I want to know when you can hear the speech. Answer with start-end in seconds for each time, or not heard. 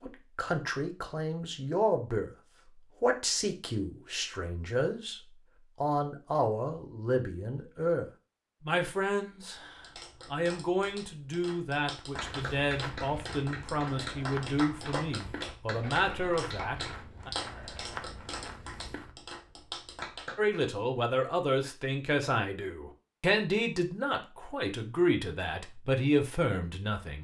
0.0-2.3, 3.0-17.3, 20.4-27.1.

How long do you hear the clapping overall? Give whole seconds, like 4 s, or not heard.
11 s.